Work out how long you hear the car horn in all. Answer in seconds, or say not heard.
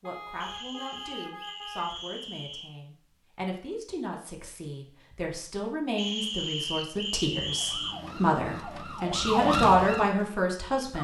2 s.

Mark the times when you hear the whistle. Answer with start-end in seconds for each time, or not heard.
0.4-2.7, 6.0-8.0.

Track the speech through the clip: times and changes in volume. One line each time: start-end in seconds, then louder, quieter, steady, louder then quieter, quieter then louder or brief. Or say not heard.
0.0-10.9 louder.